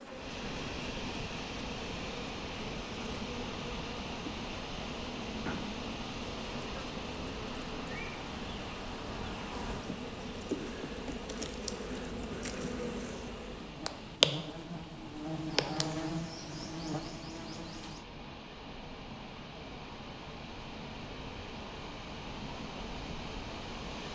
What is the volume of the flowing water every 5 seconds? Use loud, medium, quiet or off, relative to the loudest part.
loud, loud, medium, medium, loud.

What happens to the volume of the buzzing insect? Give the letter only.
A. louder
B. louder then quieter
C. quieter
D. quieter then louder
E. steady
A.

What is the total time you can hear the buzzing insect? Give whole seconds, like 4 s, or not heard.
18 s.